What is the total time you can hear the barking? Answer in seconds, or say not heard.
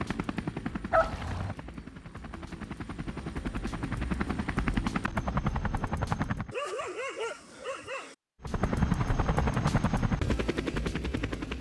2 s.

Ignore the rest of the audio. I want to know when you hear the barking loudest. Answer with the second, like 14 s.
1 s.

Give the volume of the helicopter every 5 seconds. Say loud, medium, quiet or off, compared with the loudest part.
medium, loud, loud.